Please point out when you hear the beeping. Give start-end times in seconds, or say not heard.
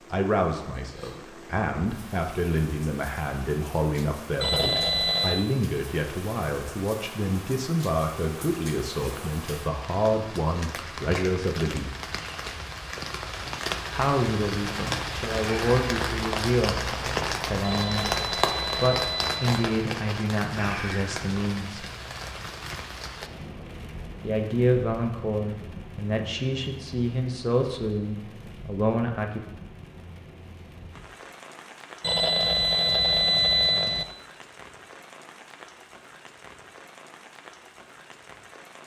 4.4-5.5, 17.6-19.6, 32.0-34.0.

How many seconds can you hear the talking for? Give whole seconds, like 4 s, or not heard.
25 s.